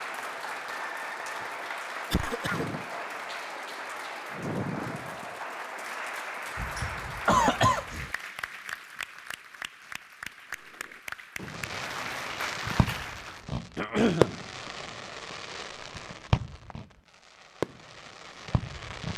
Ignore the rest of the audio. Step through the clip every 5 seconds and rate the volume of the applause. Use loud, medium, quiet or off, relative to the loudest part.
loud, loud, loud, off.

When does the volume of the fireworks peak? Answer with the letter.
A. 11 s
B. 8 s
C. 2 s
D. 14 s
D.